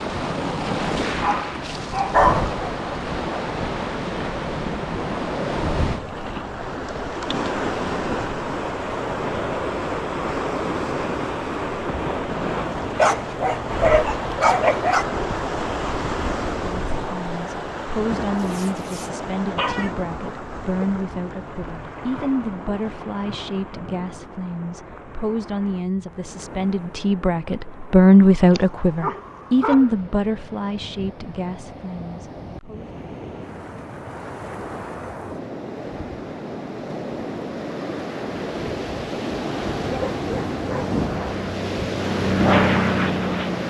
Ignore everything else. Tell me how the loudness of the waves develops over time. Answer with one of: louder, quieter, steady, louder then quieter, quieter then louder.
quieter then louder.